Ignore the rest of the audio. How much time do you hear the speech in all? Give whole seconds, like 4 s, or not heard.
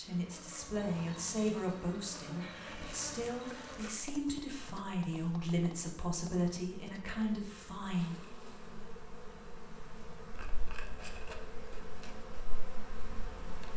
8 s.